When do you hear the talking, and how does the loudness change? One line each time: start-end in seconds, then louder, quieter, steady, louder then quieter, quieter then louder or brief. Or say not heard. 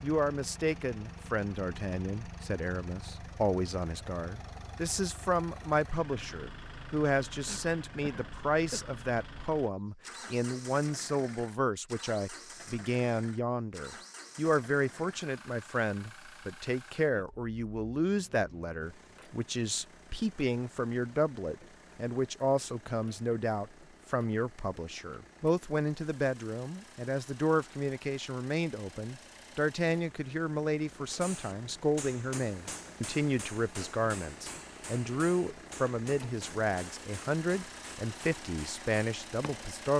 0.0-39.9 steady.